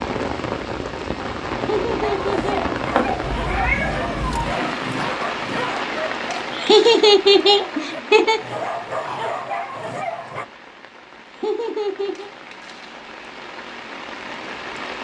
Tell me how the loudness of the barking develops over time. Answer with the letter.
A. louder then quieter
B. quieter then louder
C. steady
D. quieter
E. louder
C.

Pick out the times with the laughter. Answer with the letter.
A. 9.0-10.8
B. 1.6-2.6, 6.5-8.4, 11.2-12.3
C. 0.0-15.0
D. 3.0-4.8
B.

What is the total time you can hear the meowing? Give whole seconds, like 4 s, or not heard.
2 s.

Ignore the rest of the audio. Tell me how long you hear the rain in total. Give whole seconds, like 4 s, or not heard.
15 s.